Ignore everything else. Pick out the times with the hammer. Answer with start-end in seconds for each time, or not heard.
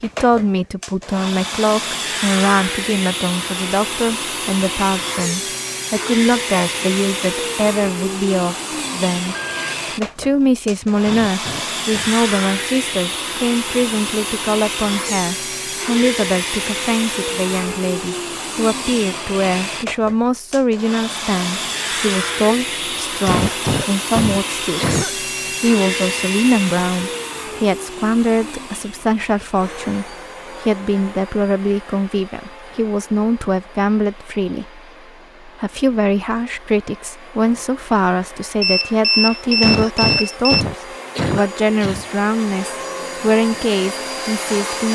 not heard.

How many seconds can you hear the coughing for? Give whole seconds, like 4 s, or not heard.
6 s.